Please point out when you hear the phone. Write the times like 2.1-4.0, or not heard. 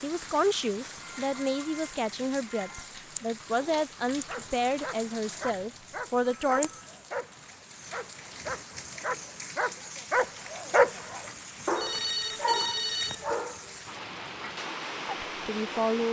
1.0-2.9, 5.6-7.0, 11.8-13.2.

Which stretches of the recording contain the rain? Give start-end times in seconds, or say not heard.
0.0-16.0.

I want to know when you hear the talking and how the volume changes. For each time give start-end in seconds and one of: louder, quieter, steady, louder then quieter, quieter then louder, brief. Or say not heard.
0.0-6.7 steady
15.2-16.0 brief.